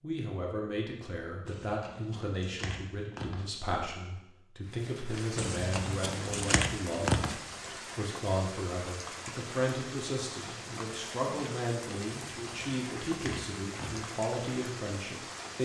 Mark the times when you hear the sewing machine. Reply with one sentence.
The sewing machine can't be heard in this clip.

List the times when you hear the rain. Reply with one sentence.
You can hear the rain from 4.6 to 15.6 s.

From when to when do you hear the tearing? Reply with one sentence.
The tearing can be heard from 1.4 to 3.5 s, from 5.3 to 7.3 s and from 12.2 to 14.1 s.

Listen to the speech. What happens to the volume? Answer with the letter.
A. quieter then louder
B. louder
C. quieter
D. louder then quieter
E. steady
E.